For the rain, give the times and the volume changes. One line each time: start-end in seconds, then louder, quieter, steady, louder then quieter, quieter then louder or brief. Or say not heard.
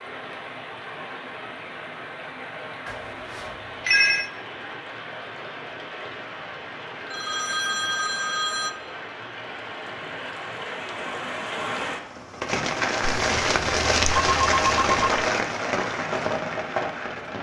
0.0-17.3 louder.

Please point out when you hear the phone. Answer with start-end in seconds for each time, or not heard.
2.9-4.3, 7.1-8.8, 13.1-15.2.